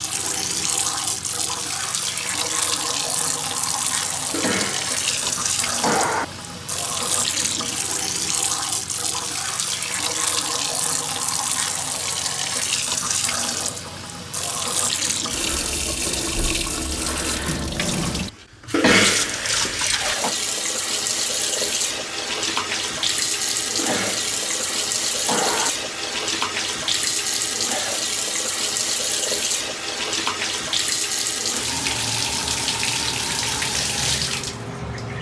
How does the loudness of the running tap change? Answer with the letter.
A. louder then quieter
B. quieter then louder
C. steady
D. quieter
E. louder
C.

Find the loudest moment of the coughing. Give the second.
19 s.